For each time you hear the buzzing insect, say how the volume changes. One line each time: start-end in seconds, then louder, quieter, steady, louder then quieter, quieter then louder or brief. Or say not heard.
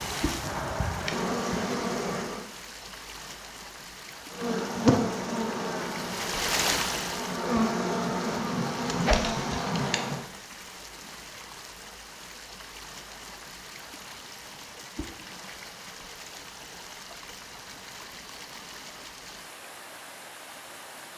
0.0-2.5 brief
4.3-10.2 quieter then louder.